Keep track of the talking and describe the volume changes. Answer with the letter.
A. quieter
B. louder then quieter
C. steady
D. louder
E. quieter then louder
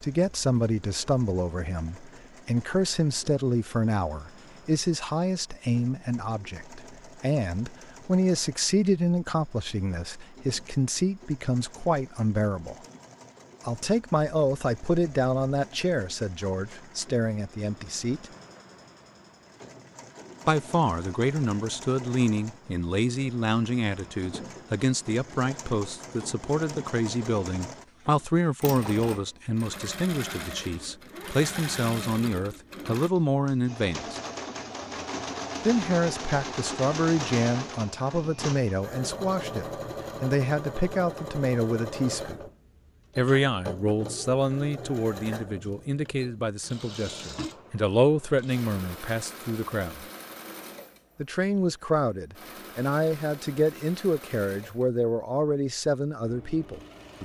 C.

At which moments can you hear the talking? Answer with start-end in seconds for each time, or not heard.
0.0-12.8, 13.7-18.2, 20.4-34.2, 35.6-42.5, 43.1-50.0, 51.1-57.2.